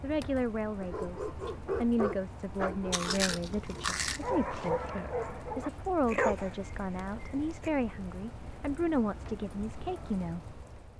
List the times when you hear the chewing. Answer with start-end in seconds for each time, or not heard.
2.9-4.9.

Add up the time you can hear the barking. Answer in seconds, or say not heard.
7 s.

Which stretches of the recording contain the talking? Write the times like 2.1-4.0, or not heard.
0.0-10.4.